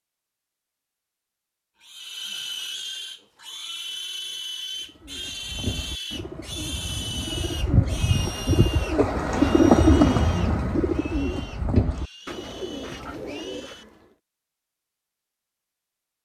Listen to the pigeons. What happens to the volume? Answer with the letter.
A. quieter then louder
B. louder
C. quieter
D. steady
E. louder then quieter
E.